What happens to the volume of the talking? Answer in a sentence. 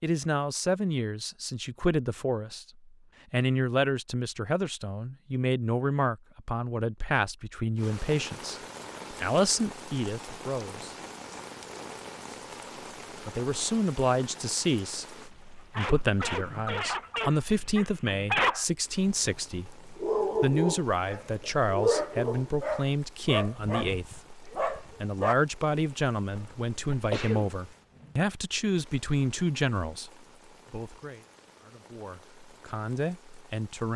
The volume of the talking stays about the same.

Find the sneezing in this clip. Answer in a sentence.
You can hear the sneezing from 26.4 to 27.5 s.